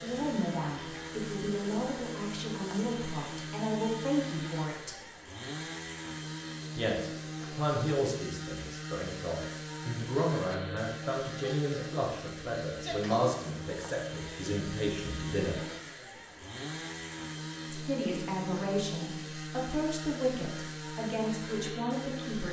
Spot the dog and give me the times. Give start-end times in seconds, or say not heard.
not heard.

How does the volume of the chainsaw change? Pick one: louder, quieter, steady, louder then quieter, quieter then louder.
steady.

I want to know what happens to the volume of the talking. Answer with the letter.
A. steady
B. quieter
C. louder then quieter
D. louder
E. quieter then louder
A.